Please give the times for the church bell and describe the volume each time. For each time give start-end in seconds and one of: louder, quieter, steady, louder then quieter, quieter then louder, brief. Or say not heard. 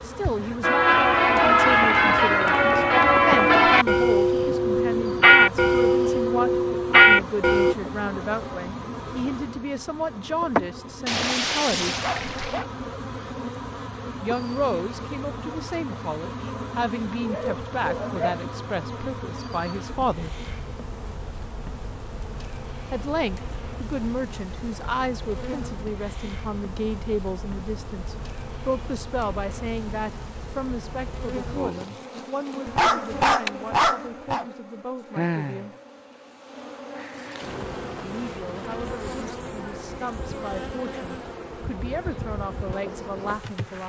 0.6-7.8 steady.